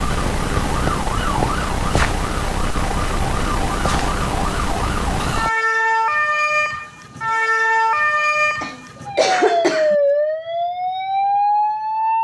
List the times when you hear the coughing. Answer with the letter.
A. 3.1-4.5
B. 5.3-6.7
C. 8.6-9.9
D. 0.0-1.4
C.